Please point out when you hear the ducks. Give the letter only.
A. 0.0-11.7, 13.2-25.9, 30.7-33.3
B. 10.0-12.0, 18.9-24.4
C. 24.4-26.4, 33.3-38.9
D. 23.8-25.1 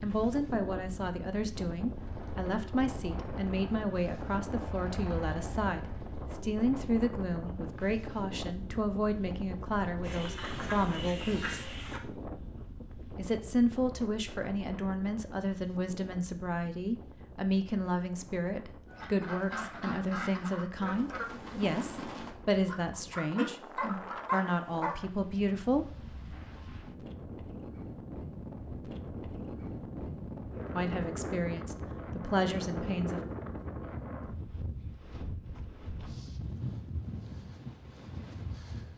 B.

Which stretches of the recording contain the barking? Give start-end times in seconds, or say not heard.
23.8-25.1.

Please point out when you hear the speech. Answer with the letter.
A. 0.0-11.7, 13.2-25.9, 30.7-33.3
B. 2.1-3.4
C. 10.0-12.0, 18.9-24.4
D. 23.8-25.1
A.